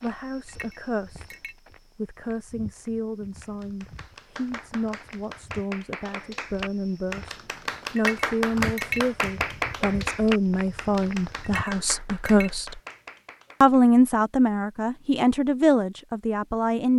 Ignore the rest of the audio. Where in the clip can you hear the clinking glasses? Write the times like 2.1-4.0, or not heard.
0.5-1.6, 8.0-9.0, 11.4-12.5.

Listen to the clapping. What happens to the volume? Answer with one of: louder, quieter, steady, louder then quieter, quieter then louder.
louder then quieter.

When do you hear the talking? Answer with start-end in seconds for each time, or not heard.
0.0-1.4, 1.9-12.8, 13.6-16.9.